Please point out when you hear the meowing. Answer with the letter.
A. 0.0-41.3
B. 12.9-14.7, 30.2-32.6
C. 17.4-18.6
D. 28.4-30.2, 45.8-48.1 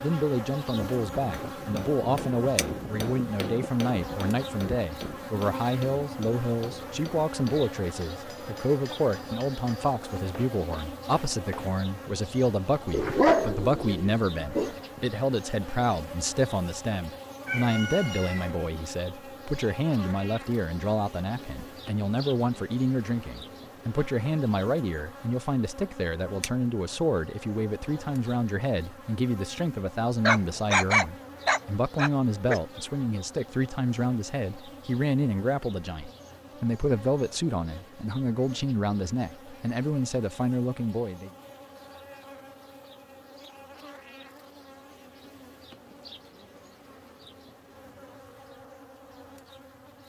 C.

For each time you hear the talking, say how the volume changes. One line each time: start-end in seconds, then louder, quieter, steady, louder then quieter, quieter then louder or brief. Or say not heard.
0.0-41.3 steady.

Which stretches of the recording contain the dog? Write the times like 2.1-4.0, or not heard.
12.9-14.7, 30.2-32.6.